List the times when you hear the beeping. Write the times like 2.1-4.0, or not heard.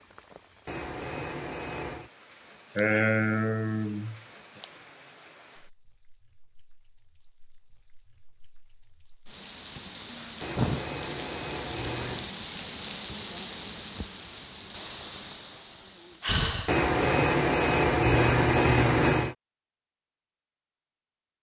0.7-2.1, 10.4-12.3, 16.6-19.4.